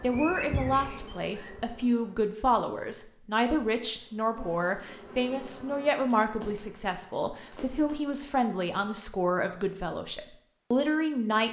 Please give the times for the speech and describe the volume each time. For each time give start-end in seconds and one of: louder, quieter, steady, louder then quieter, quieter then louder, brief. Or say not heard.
0.0-11.4 steady.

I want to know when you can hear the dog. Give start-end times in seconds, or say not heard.
not heard.